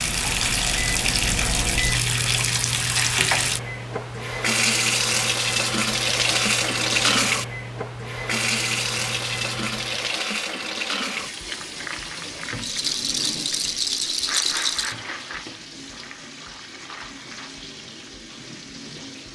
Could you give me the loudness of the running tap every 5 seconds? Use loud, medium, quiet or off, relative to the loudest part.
loud, loud, medium, quiet.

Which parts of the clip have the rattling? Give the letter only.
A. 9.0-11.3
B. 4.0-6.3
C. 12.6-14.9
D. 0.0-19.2
C.